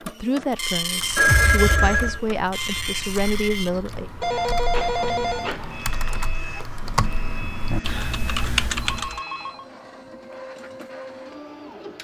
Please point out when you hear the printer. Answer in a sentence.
You can hear the printer from 0.0 to 11.9 s.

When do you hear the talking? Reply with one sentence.
The talking can be heard from 0.0 to 4.1 s.